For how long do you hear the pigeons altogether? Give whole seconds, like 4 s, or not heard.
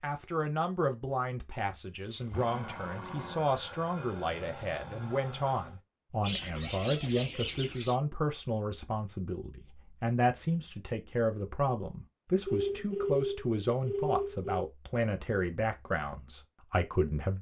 2 s.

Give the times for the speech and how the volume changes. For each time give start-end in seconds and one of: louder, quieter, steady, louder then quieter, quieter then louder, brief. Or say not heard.
0.0-17.3 steady.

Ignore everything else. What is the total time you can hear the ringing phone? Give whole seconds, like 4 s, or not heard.
2 s.